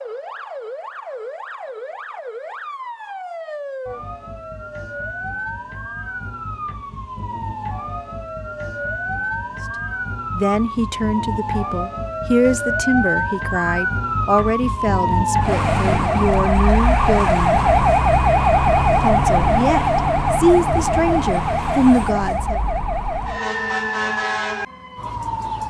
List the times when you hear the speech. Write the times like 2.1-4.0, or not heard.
10.3-17.6, 19.0-22.6.